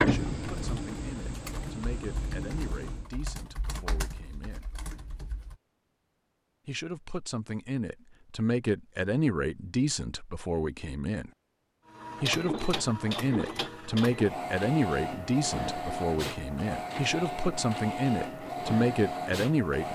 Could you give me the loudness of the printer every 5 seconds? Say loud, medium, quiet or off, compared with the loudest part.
loud, off, loud, loud.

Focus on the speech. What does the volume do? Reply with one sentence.
The volume of the speech goes up.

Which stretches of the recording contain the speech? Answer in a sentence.
The speech can be heard from 0.0 to 4.7 s, from 6.7 to 11.3 s and from 12.2 to 19.9 s.